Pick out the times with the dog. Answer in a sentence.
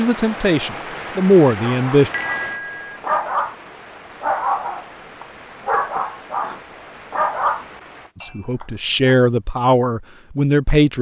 You can hear the dog from 1.6 to 3.5 s and from 4.2 to 9.2 s.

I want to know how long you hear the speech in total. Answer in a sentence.
The speech can be heard for 5 seconds in total.